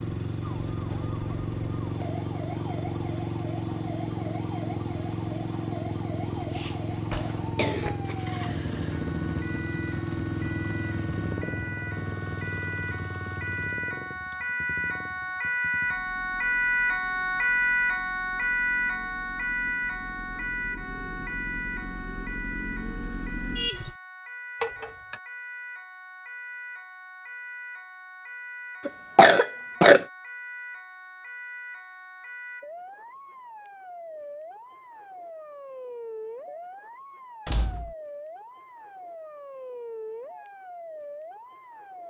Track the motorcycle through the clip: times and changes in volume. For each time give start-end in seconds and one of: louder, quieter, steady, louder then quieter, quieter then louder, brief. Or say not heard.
0.0-23.9 quieter then louder.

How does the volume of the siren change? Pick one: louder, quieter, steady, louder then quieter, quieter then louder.
louder then quieter.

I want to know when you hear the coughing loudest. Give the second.
30 s.